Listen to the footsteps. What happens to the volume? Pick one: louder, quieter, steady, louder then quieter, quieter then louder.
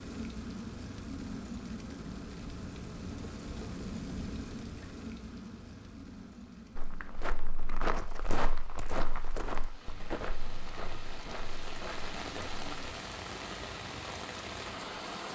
quieter.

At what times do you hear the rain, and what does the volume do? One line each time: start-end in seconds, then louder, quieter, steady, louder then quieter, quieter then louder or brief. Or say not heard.
0.0-15.3 quieter then louder.